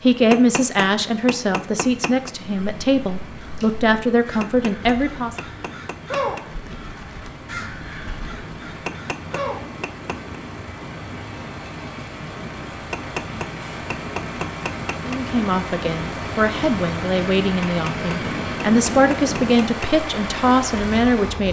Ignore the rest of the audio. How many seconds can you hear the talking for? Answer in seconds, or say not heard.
12 s.